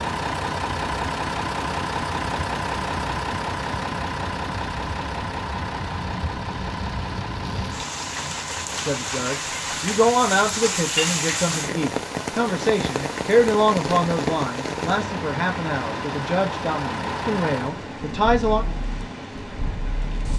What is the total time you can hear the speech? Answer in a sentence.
The speech can be heard for 10 seconds in total.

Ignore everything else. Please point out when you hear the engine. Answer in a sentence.
The engine can be heard from 0.0 to 20.3 s.